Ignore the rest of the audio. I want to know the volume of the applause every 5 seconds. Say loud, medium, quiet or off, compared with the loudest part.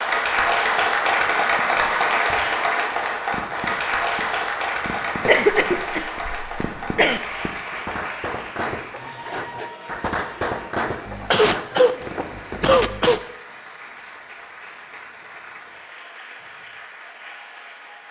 loud, medium, quiet, quiet.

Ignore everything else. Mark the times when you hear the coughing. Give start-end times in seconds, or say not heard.
5.2-7.2, 11.1-13.2.